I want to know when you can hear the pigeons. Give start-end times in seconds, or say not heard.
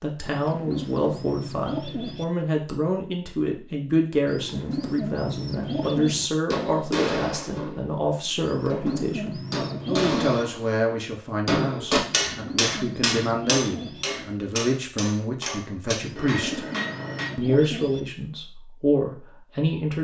0.2-2.2, 4.2-6.3, 8.4-10.4, 12.0-14.1, 16.0-18.0.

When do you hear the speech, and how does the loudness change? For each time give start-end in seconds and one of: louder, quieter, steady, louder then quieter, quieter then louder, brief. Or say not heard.
0.0-16.6 steady
17.4-19.9 brief.